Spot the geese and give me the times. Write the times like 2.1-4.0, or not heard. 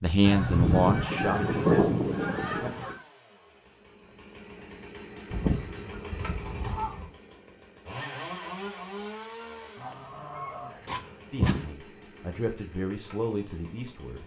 0.2-3.0, 5.3-7.1, 9.8-11.7.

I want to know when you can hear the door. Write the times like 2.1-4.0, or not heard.
not heard.